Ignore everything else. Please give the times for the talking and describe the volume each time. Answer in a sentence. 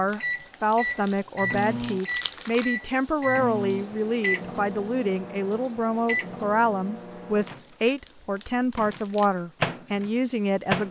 You can hear the talking from 0.0 to 10.8 s, at a steady volume.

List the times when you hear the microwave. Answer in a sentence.
The microwave can be heard from 0.2 to 7.7 s and from 8.8 to 10.8 s.